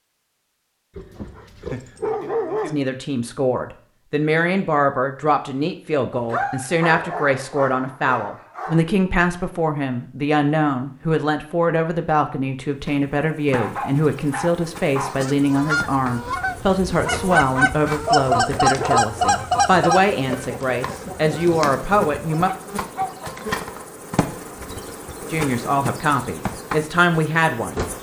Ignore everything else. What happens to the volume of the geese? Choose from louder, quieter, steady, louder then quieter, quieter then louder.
louder then quieter.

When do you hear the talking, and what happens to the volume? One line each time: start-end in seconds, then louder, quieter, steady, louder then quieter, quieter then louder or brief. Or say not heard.
2.6-22.5 steady
25.3-27.8 brief.